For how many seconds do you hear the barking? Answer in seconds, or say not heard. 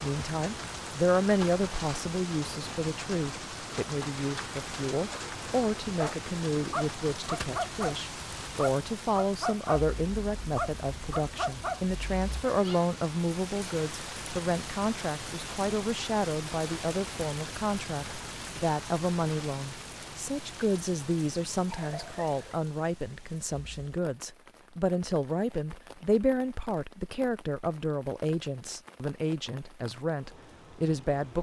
5 s.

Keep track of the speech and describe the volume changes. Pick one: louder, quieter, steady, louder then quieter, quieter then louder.
steady.